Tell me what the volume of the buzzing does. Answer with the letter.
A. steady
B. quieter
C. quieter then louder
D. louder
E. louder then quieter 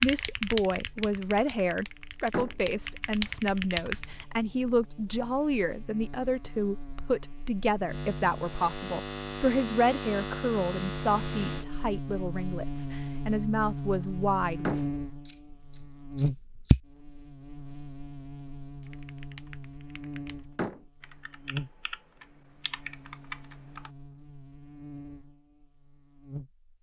E.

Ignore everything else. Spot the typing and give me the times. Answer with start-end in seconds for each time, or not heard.
0.0-4.2, 18.8-23.9.